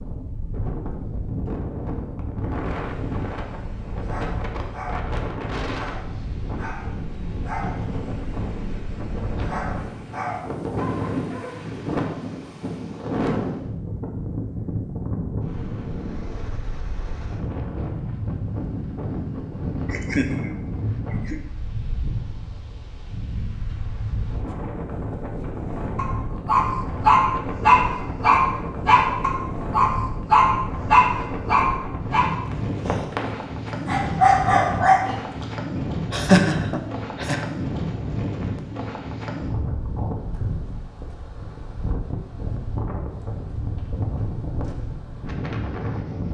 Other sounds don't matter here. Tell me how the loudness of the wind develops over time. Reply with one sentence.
The volume of the wind stays about the same.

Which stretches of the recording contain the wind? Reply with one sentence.
The wind can be heard from 0.0 to 46.3 s.